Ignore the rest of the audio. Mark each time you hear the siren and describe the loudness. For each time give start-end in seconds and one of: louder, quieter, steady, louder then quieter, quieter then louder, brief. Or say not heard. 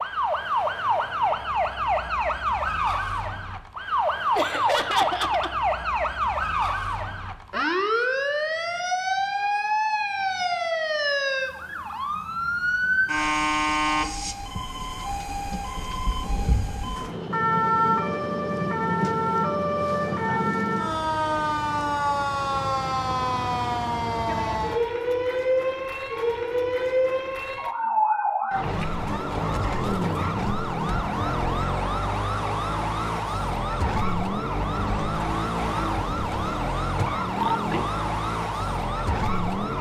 0.0-39.7 steady.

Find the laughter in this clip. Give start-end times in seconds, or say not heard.
4.3-5.5.